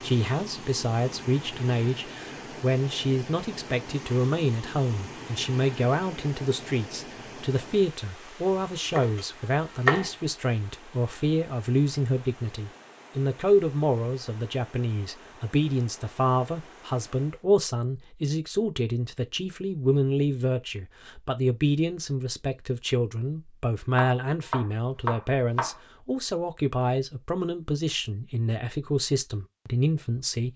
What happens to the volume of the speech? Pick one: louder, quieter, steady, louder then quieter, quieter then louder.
steady.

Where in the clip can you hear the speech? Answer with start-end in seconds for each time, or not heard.
0.0-30.5.